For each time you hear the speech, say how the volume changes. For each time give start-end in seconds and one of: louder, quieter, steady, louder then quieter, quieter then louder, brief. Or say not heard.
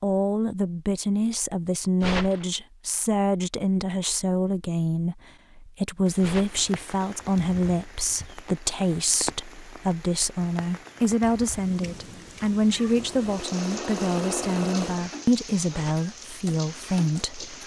0.0-17.6 steady.